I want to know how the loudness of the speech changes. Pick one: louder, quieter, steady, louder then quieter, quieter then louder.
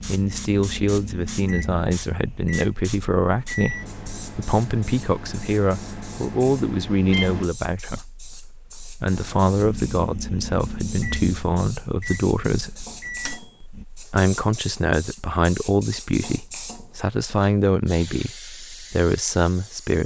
steady.